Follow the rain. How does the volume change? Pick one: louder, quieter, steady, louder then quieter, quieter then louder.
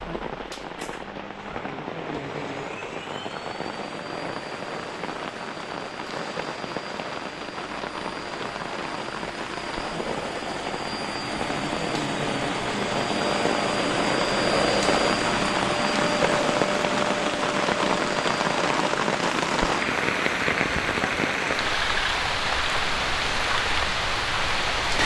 louder.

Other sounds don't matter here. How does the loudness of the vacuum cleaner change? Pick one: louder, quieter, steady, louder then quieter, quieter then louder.
louder then quieter.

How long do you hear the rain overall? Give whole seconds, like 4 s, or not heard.
25 s.